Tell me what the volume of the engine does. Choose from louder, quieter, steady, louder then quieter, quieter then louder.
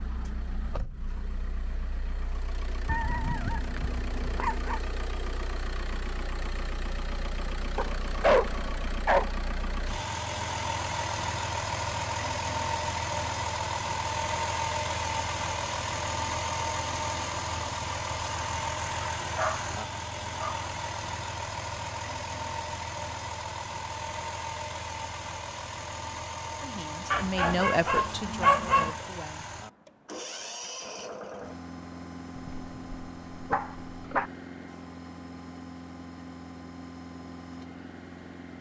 louder then quieter.